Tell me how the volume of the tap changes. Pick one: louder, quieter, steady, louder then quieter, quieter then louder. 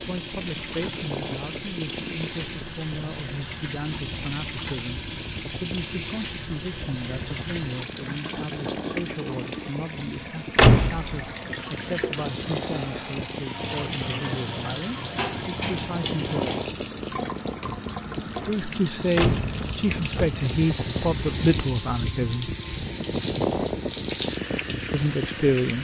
steady.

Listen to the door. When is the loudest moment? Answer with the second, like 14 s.
11 s.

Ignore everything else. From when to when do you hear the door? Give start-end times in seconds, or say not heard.
10.6-11.2, 19.1-20.4.